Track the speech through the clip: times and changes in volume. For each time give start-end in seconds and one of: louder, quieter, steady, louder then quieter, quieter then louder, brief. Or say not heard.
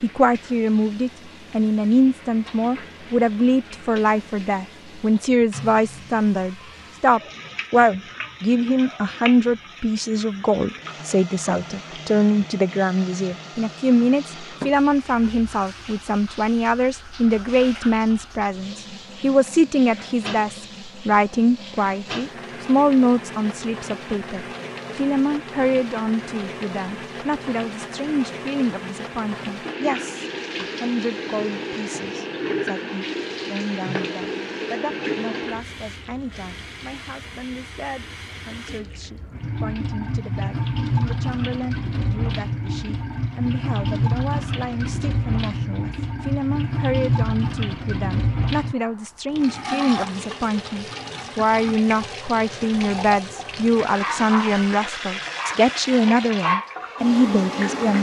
0.0-57.9 quieter then louder.